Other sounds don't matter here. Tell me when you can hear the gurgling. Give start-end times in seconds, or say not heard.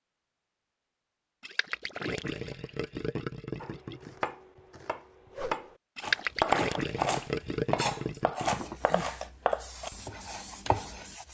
1.4-4.1, 6.0-8.7.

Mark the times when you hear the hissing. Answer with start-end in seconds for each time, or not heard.
8.5-11.3.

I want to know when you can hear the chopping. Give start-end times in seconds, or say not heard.
3.6-11.1.